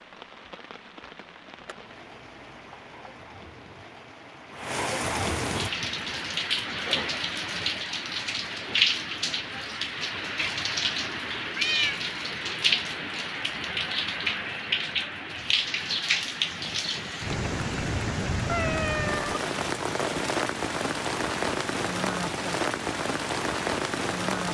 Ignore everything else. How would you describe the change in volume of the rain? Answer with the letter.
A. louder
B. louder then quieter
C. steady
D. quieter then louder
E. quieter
A.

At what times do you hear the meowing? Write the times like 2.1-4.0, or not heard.
1.6-3.1, 11.6-12.0, 18.4-19.4.